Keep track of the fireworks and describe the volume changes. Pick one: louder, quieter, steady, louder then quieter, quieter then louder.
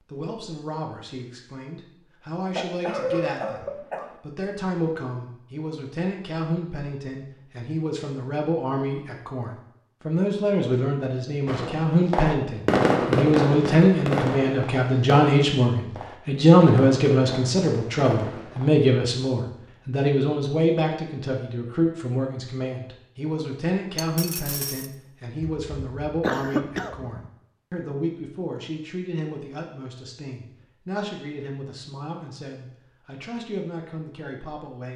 quieter.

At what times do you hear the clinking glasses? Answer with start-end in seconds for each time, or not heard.
23.9-24.9.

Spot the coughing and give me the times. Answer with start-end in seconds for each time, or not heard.
2.5-4.2, 25.4-27.2.